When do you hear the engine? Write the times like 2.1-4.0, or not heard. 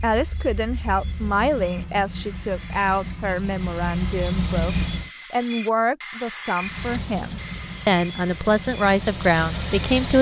0.0-5.1, 6.6-10.1.